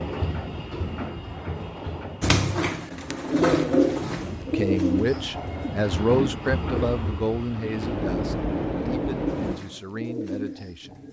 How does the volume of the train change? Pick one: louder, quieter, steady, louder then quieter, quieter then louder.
quieter then louder.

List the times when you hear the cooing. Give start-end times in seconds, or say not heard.
2.2-5.7, 9.2-11.0.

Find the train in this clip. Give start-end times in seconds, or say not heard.
0.0-9.6.